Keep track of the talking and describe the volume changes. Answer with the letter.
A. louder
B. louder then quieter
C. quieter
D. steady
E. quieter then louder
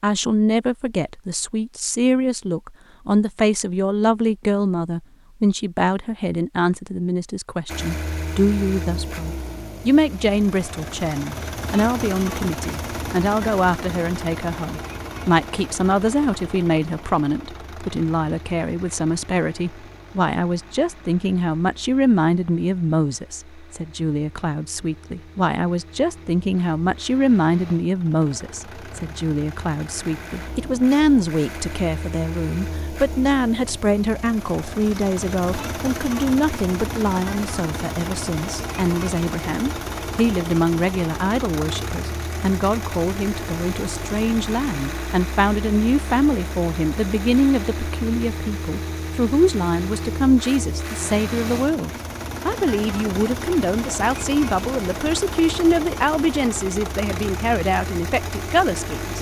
D.